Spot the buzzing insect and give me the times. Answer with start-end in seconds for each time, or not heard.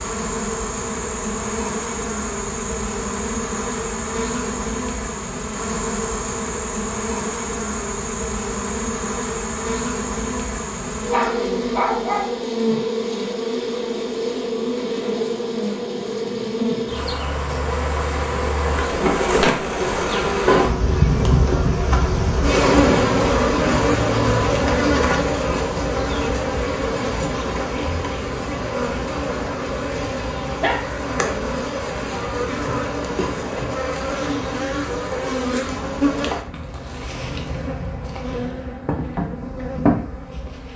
0.0-40.7.